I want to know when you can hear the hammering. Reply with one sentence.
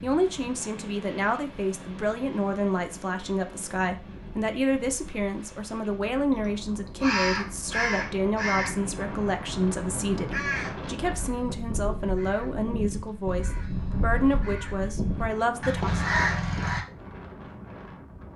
You can't hear the hammering here.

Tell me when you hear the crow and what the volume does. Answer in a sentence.
You can hear the crow from 7.0 to 16.9 s, getting quieter then louder.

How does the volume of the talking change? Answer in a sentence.
The loudness of the talking stays about the same.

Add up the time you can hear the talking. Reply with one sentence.
The talking can be heard for 16 seconds in total.